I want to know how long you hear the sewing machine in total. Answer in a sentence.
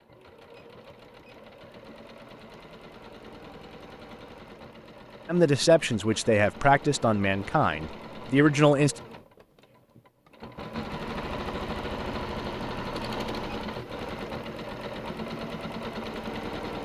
The sewing machine can be heard for 17 seconds in total.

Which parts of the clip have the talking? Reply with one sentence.
You can hear the talking from 5.2 to 8.9 s.